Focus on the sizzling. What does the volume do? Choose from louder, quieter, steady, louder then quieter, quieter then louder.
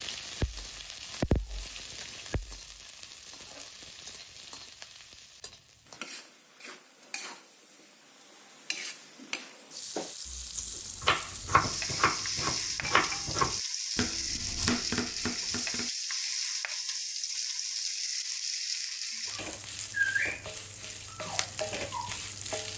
quieter then louder.